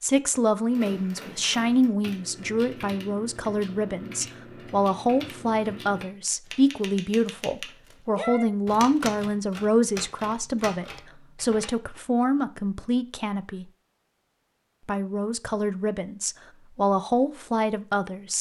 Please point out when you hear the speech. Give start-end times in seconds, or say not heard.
0.0-13.7, 14.8-18.3.